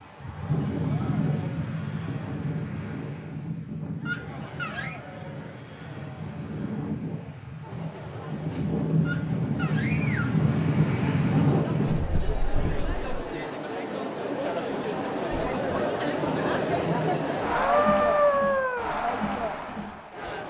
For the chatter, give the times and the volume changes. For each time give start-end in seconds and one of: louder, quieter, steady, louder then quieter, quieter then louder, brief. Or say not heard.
0.2-20.4 louder.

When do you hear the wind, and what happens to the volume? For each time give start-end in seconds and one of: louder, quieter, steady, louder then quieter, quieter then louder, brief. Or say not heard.
0.0-13.1 quieter then louder.